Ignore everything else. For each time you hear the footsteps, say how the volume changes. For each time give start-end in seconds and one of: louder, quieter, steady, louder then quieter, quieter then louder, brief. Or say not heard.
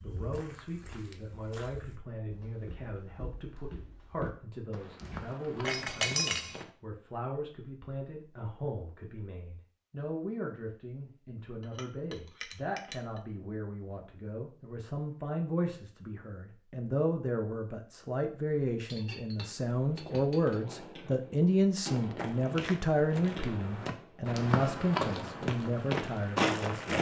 0.0-6.7 louder
22.1-26.9 louder.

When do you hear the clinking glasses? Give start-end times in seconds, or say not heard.
5.0-6.6, 11.6-13.2, 18.9-20.6.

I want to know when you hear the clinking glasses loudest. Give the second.
6 s.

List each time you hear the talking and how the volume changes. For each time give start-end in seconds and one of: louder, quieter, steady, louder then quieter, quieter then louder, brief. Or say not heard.
0.0-26.9 louder.